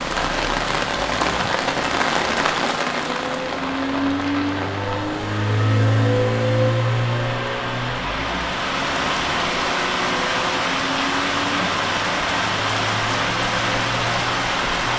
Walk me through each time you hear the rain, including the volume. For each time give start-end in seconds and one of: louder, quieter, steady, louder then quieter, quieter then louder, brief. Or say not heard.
0.0-14.9 quieter then louder.